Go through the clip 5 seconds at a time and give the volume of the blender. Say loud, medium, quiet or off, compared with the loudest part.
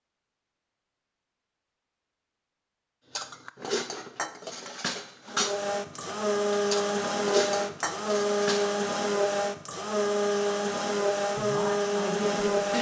off, loud, loud.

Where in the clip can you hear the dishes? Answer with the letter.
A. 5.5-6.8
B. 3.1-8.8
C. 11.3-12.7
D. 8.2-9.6
B.